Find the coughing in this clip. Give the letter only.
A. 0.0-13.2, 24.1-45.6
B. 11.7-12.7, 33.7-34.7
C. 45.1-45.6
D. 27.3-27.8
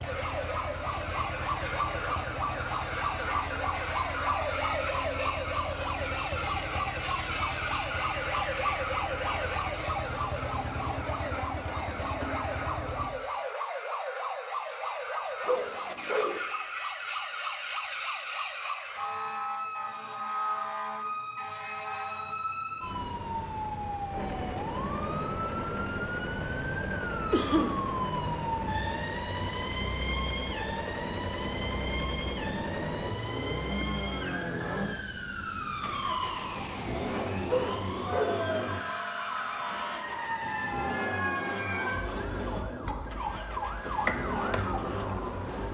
D.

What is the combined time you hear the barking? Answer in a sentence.
The barking can be heard for 2 seconds in total.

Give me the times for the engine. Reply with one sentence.
The engine can be heard from 0.0 to 13.2 s and from 24.1 to 45.6 s.